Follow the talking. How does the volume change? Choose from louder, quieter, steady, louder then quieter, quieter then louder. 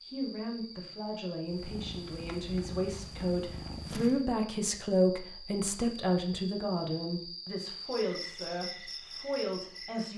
louder then quieter.